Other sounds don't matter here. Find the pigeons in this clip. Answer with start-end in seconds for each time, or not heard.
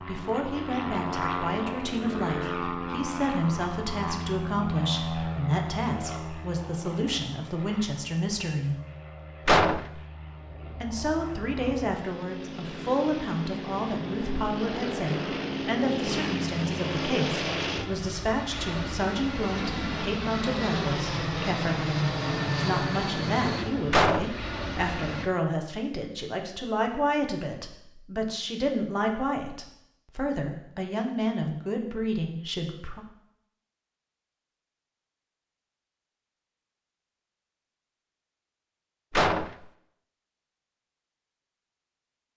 not heard.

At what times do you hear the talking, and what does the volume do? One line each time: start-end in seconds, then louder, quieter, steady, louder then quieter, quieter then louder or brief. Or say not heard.
0.0-8.8 steady
10.8-33.0 steady.